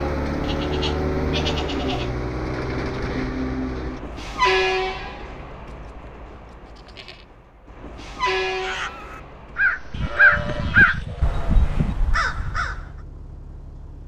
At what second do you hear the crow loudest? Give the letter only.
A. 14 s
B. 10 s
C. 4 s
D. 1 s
B.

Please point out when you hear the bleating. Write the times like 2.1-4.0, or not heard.
0.4-2.1, 5.7-7.2, 9.9-11.9.